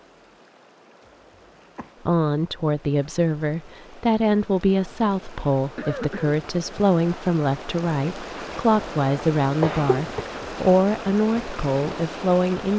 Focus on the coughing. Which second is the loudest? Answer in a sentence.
The volume of the coughing peaks at 10 seconds.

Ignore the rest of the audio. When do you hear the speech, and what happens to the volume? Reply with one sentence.
You can hear the speech from 2.0 to 12.7 s, at a steady volume.